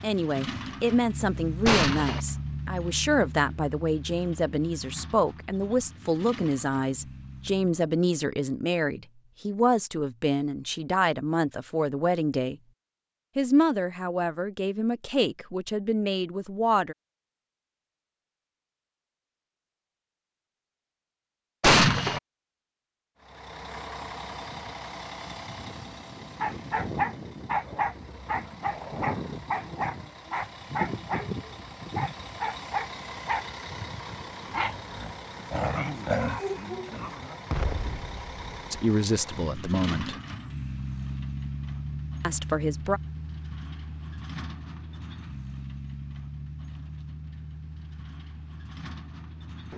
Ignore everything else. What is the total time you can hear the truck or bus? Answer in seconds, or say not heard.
34 s.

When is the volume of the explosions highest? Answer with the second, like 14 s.
22 s.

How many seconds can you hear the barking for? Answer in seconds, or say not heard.
11 s.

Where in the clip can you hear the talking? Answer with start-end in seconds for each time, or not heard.
0.0-12.6, 13.3-16.9, 38.7-40.1, 42.2-43.0.